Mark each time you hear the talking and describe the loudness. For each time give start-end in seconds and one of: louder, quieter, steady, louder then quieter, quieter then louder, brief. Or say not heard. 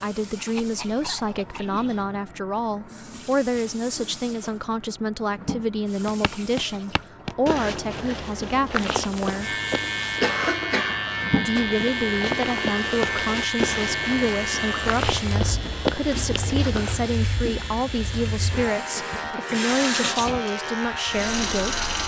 0.0-9.6 steady
11.4-21.8 steady.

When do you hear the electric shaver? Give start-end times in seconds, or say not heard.
9.4-22.0.